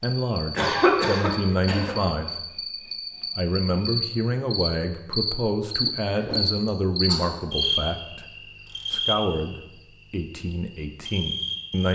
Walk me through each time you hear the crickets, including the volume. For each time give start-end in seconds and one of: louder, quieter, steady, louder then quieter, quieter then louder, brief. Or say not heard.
0.0-11.8 louder then quieter.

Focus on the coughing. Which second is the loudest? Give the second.
1 s.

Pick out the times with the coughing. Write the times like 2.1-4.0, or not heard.
0.6-1.9, 6.2-7.3.